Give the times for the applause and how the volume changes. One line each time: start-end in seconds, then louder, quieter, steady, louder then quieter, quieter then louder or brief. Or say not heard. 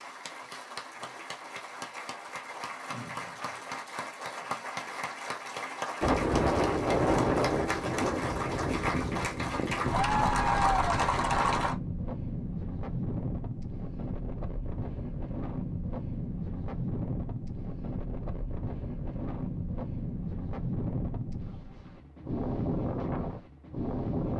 0.0-11.8 louder.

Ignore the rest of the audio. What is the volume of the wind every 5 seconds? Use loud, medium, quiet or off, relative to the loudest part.
off, loud, medium, medium, medium.